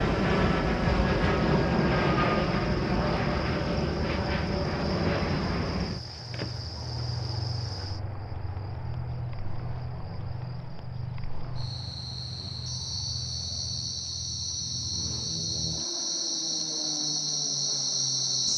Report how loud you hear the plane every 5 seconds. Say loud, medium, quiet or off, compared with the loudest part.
loud, medium, quiet, quiet.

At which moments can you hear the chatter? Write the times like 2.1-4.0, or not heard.
not heard.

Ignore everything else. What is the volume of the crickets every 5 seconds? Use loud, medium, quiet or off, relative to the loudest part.
quiet, quiet, medium, loud.